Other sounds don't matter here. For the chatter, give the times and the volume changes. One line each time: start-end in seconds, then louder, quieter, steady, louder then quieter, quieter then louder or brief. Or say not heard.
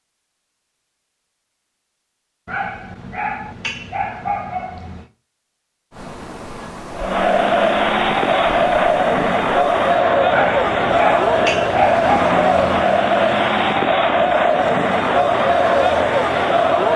7.0-16.9 steady.